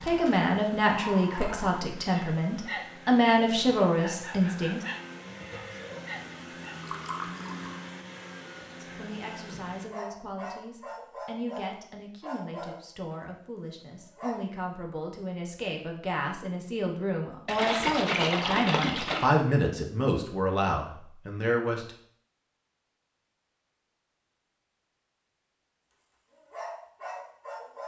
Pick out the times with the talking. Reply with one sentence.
You can hear the talking from 0.0 to 4.8 s and from 8.8 to 21.9 s.